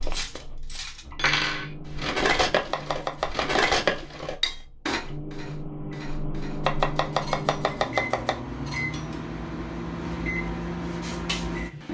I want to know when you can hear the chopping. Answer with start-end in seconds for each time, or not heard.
2.4-4.0, 6.6-8.4.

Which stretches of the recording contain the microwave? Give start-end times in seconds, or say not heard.
0.0-11.8.